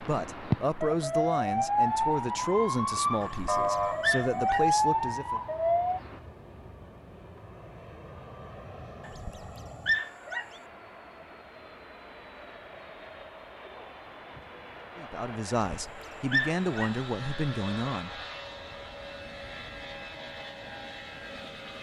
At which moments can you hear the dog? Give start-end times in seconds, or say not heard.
3.2-4.7, 9.1-10.4, 15.7-16.9.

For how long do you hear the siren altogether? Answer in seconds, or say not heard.
6 s.